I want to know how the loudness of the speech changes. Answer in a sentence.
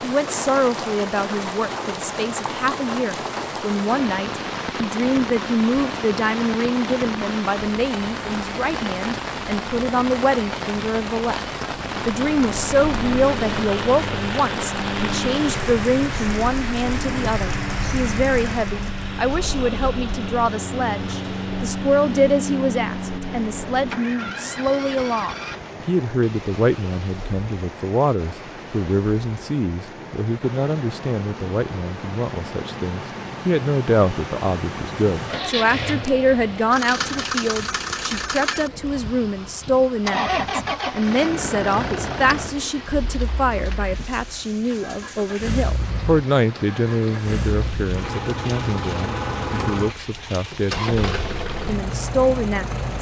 The loudness of the speech stays about the same.